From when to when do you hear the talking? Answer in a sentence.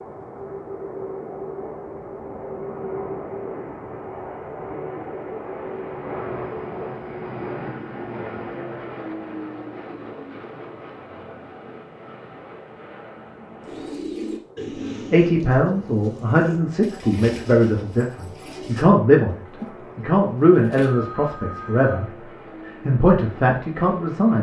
You can hear the talking from 15.1 to 22.1 s and from 22.9 to 24.3 s.